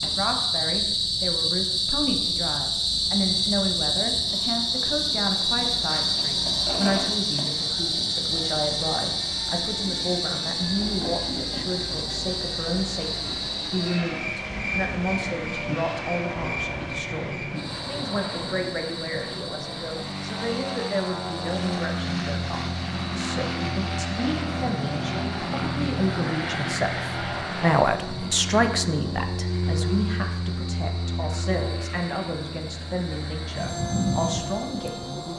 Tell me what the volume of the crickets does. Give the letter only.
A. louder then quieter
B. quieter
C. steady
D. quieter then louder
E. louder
B.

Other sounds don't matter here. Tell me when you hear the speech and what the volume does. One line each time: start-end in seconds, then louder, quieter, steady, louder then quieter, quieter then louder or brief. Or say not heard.
0.0-35.3 steady.